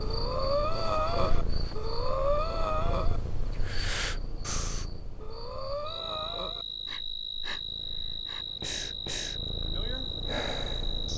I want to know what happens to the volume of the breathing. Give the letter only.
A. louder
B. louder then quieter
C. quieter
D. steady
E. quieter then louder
E.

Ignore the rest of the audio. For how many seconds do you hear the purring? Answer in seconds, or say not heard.
11 s.